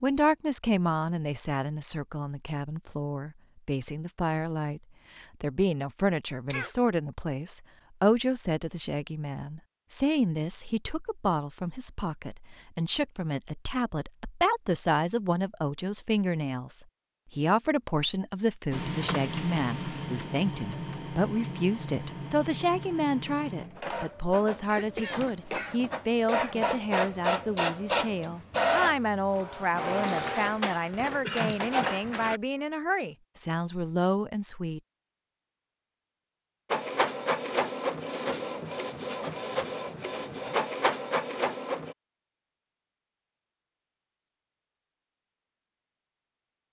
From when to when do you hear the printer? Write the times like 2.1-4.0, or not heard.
18.7-32.4, 36.7-42.0.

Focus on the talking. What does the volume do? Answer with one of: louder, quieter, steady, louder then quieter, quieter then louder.
steady.